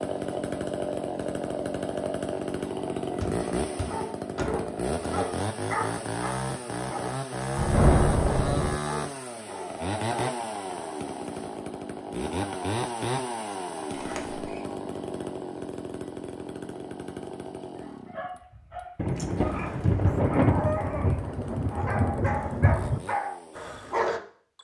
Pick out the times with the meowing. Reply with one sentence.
The meowing can't be heard in this clip.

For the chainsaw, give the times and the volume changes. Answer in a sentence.
You can hear the chainsaw from 0.0 to 24.5 s, getting quieter.